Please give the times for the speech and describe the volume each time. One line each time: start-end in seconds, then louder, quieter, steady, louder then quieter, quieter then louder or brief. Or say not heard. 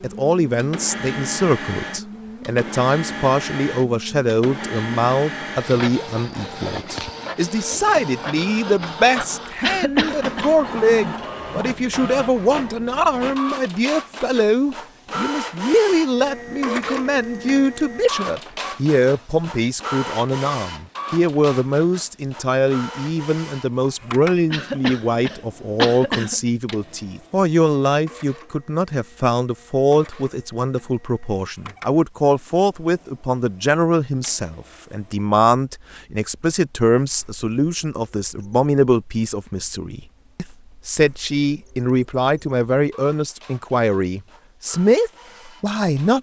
0.0-46.1 steady.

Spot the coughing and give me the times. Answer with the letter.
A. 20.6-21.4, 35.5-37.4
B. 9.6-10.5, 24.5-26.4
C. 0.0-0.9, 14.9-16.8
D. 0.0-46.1
B.